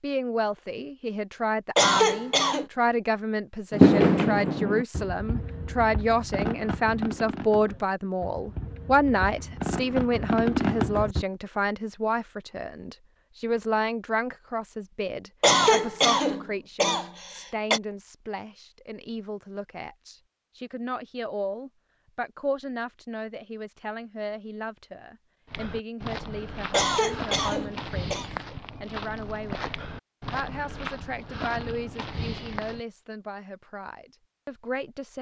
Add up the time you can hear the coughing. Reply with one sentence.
The coughing can be heard for 5 seconds in total.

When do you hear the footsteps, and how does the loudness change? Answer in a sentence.
You can hear the footsteps from 25.4 to 32.8 s, at a steady volume.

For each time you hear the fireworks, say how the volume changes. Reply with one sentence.
You can hear the fireworks from 3.7 to 11.2 s, getting quieter then louder.